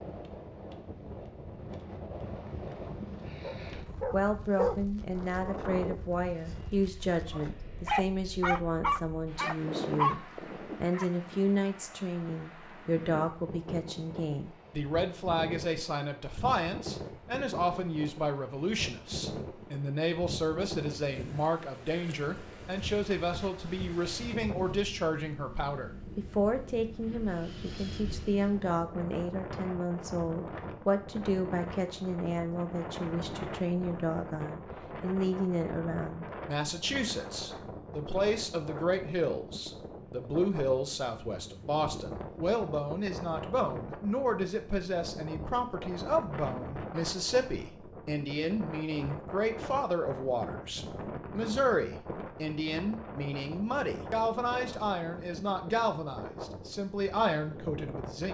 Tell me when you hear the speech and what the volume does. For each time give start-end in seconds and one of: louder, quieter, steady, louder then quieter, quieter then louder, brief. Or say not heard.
4.1-58.2 steady.